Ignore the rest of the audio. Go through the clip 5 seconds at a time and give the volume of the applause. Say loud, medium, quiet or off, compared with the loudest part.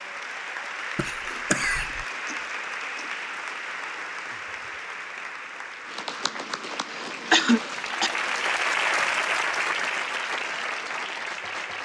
medium, loud, loud.